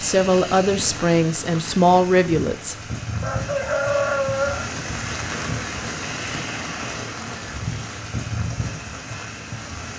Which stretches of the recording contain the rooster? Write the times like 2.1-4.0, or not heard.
3.2-4.7.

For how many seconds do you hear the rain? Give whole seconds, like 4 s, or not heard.
10 s.